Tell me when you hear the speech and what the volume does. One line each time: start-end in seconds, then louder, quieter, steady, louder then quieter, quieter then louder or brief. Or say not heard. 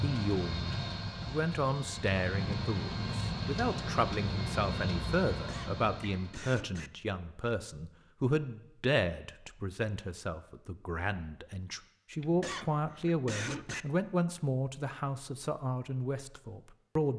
0.0-17.1 steady.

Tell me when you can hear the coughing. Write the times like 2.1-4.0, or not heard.
5.3-6.9, 12.2-13.8.